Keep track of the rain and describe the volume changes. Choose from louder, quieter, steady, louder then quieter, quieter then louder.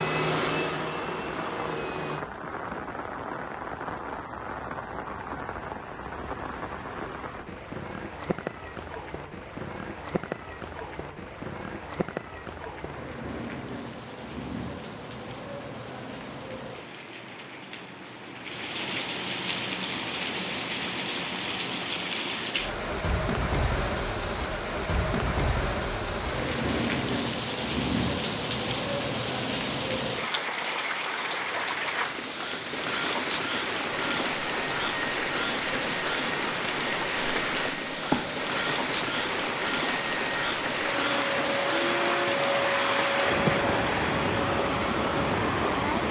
louder.